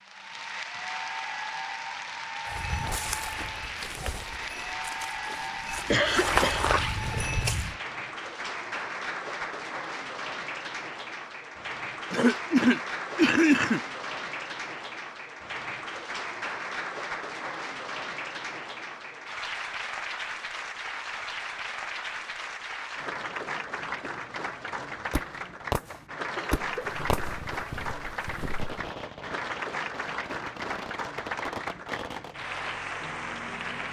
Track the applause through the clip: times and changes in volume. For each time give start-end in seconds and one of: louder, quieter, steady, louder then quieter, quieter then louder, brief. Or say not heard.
0.0-33.8 steady.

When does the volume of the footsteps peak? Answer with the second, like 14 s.
6 s.